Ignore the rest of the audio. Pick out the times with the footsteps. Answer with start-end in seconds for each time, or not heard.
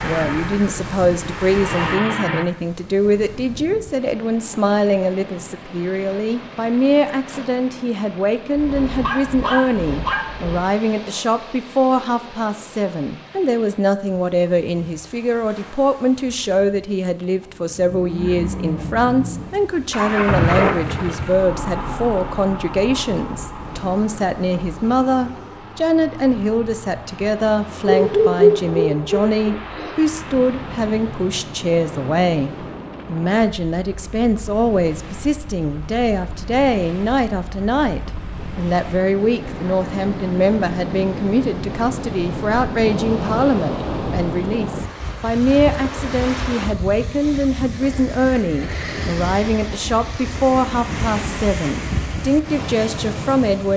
not heard.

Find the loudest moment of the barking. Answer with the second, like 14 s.
28 s.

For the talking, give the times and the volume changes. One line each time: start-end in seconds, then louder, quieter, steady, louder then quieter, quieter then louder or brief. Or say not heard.
0.0-53.7 steady.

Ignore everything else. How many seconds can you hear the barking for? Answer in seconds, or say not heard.
4 s.